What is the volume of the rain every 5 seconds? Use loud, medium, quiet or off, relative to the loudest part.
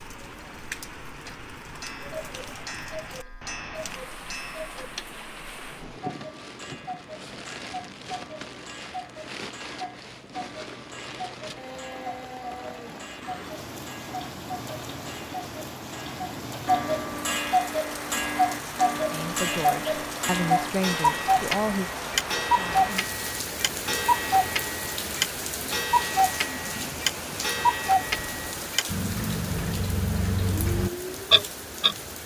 medium, medium, medium, loud, loud, loud, loud.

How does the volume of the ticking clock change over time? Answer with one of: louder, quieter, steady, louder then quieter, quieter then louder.
louder.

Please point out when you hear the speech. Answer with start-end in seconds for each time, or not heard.
19.1-21.9.